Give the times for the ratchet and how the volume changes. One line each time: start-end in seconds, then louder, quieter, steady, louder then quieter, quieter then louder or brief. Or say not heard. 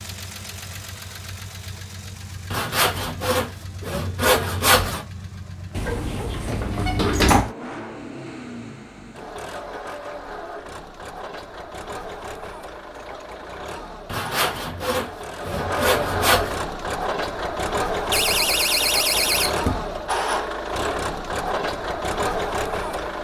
not heard.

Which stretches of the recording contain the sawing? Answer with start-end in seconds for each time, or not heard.
2.5-5.0, 14.1-16.6.